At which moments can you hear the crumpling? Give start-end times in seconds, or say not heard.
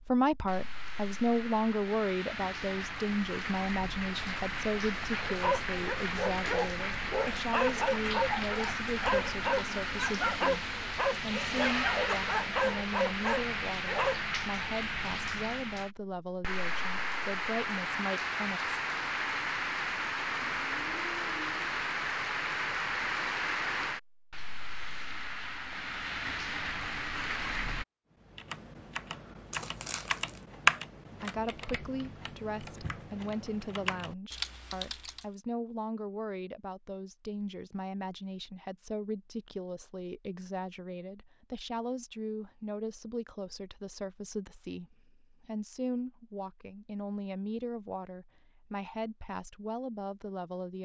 29.5-30.4.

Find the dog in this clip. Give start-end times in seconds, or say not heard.
5.2-14.2.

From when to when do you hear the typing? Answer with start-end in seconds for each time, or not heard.
28.2-35.2.